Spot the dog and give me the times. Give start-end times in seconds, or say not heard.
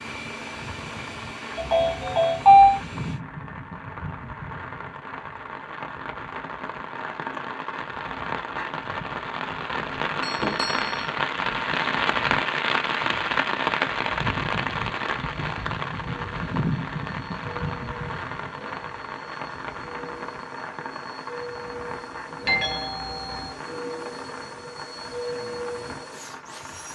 not heard.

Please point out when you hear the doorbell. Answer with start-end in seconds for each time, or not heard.
1.6-2.8, 10.2-11.1, 22.4-23.5.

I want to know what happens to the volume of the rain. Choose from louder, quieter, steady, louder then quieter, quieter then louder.
louder then quieter.